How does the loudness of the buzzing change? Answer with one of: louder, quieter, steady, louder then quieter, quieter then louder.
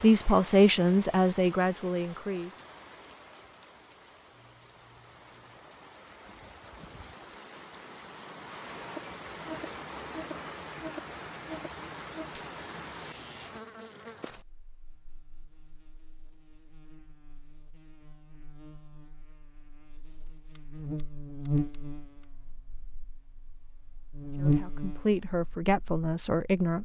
quieter then louder.